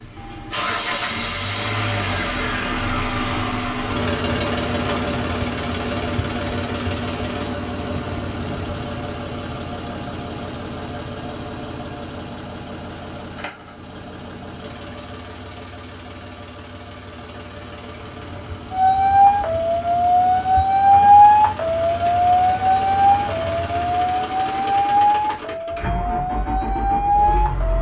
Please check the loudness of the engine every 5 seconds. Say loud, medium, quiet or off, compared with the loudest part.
loud, loud, medium, quiet, medium, medium.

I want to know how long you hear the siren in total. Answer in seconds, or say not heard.
9 s.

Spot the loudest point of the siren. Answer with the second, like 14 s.
21 s.